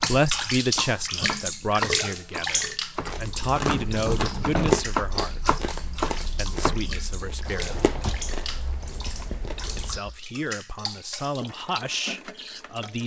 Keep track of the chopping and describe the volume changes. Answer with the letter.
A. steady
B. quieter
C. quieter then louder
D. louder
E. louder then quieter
E.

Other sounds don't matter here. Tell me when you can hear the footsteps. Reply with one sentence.
The footsteps can't be heard in this clip.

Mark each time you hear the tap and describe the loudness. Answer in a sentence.
The tap can be heard from 0.0 to 13.0 s, getting quieter.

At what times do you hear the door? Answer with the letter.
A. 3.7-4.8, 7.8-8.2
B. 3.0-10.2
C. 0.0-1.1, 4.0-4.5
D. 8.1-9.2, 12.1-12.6
A.